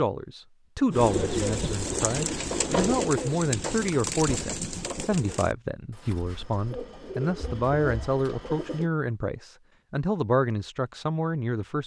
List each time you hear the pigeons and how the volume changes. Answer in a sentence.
You can hear the pigeons from 0.9 to 8.9 s, getting quieter then louder.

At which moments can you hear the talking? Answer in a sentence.
You can hear the talking from 0.0 to 11.8 s.